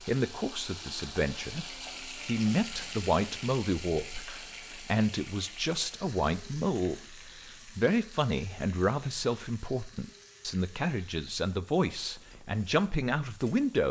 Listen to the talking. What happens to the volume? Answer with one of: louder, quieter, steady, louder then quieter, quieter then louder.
steady.